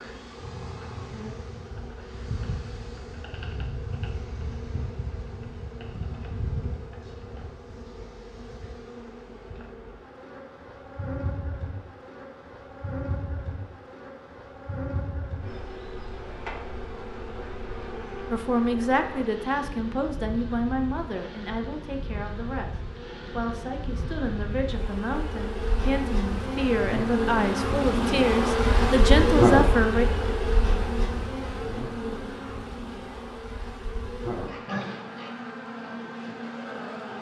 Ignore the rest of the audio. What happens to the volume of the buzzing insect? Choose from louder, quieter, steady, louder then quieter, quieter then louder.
louder.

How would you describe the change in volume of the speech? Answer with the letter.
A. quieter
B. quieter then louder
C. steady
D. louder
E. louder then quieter
B.